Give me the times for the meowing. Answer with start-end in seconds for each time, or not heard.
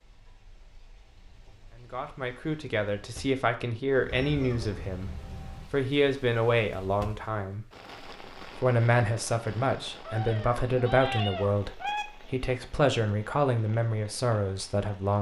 4.0-5.7, 10.1-12.1.